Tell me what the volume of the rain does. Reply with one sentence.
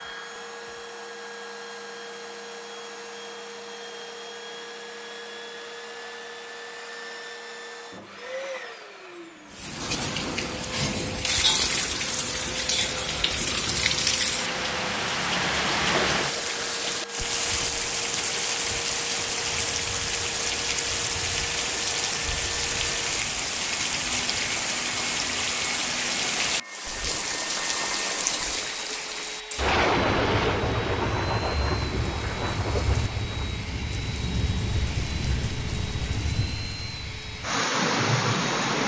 The loudness of the rain stays about the same.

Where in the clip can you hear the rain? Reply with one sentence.
The rain can be heard from 9.5 to 38.8 s.